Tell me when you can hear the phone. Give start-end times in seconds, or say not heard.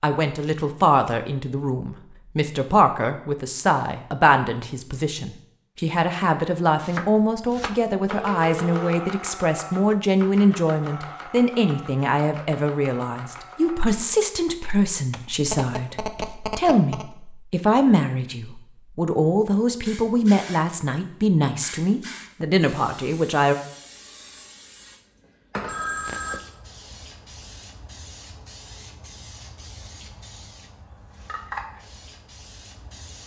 8.1-8.9, 15.4-17.1, 25.6-26.4.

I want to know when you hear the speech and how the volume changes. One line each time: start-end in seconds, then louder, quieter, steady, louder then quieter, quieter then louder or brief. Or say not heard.
0.0-23.6 steady.